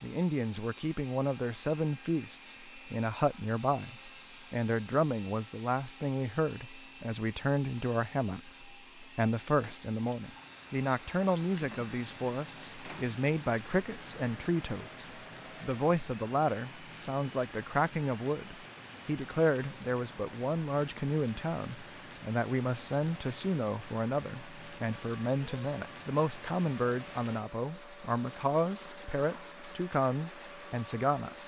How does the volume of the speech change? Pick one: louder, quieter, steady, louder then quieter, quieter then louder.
steady.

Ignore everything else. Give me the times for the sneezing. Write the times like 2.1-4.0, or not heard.
not heard.